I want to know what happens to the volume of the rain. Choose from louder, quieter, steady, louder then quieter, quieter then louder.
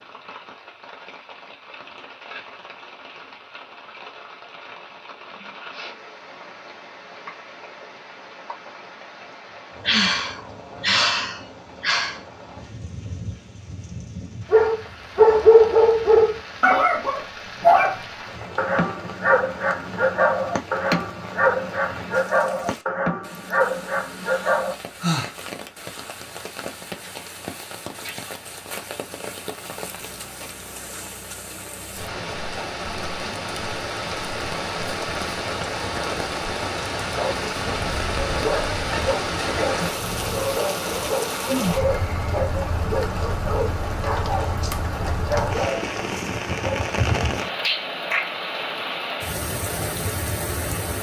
louder.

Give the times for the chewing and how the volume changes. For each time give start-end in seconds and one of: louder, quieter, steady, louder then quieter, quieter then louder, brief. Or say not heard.
not heard.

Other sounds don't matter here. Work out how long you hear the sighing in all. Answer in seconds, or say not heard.
4 s.